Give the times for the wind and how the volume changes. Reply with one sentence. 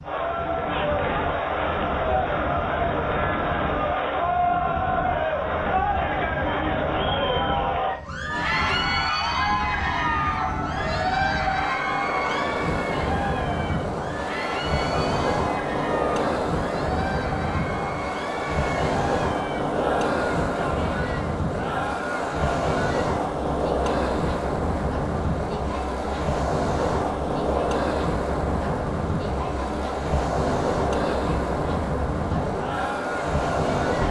You can hear the wind from 0.0 to 34.0 s, getting louder.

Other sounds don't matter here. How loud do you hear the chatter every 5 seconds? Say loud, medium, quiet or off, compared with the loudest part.
loud, loud, loud, medium, medium, medium, medium.